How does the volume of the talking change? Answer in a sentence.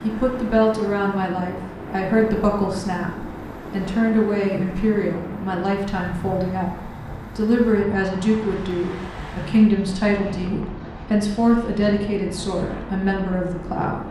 The loudness of the talking stays about the same.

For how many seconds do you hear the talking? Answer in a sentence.
The talking can be heard for 14 seconds in total.